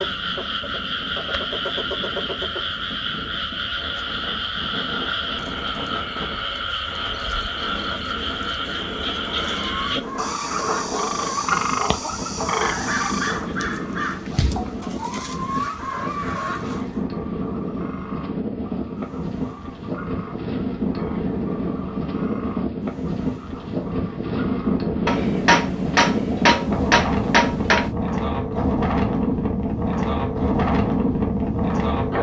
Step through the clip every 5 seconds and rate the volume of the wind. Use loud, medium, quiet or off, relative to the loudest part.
quiet, quiet, medium, medium, loud, loud, loud.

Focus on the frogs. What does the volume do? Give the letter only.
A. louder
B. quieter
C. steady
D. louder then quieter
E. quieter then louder
B.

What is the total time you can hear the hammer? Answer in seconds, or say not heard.
3 s.